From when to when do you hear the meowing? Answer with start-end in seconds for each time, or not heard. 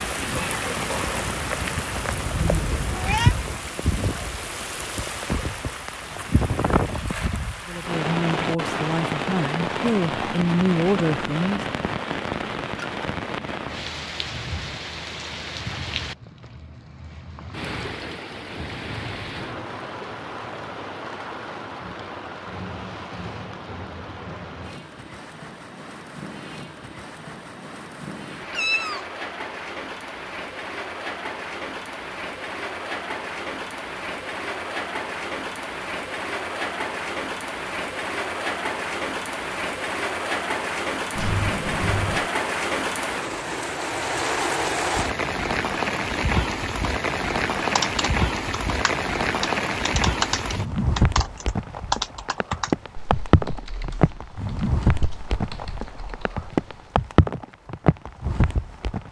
2.0-3.4, 28.5-29.1, 41.1-42.3.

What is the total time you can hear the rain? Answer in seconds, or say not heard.
59 s.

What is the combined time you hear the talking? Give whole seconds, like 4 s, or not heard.
4 s.